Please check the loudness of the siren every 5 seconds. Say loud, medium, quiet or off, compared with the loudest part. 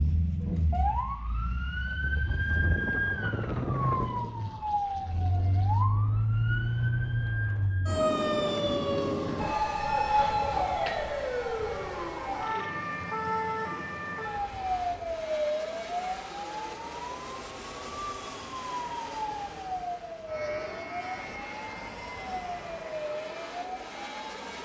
loud, loud, loud, medium, medium.